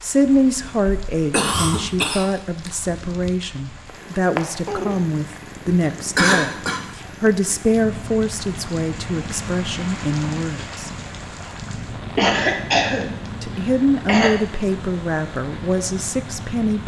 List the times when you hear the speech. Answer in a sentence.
You can hear the speech from 0.0 to 10.9 s and from 13.4 to 16.8 s.